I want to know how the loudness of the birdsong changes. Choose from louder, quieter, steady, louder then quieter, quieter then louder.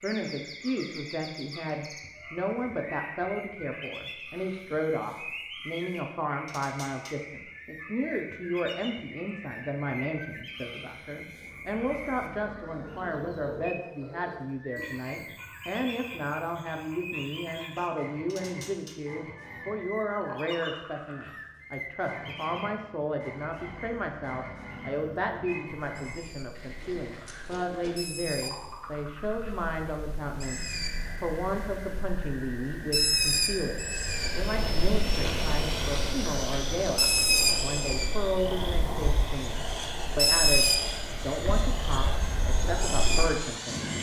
louder.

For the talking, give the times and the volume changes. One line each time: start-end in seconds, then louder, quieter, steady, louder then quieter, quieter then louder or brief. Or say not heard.
0.0-43.9 steady.